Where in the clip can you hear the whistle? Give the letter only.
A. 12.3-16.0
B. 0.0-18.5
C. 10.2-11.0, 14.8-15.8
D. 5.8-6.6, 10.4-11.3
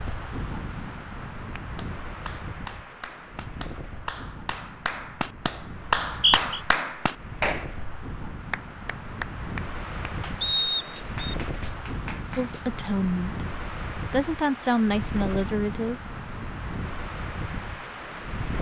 D.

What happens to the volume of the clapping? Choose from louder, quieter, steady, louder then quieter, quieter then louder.
louder then quieter.